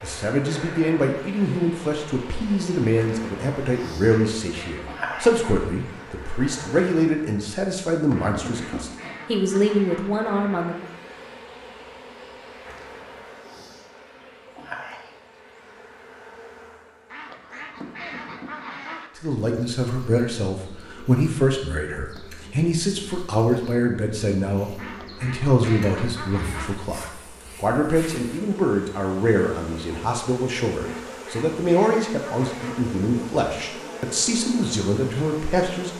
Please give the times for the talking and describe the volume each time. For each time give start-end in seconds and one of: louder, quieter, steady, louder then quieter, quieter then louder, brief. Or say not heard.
0.0-10.8 steady
19.1-35.9 steady.